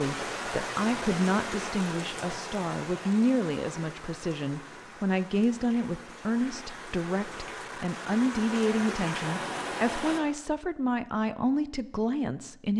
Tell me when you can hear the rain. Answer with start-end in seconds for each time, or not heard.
0.0-10.2.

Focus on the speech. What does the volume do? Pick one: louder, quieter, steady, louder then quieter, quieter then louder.
steady.